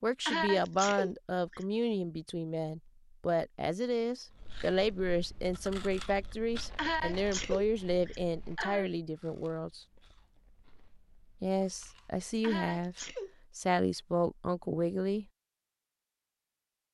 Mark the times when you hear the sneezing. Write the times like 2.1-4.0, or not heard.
0.2-1.6, 6.8-8.8, 12.4-13.3.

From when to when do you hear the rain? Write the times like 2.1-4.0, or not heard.
not heard.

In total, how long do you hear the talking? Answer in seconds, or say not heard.
14 s.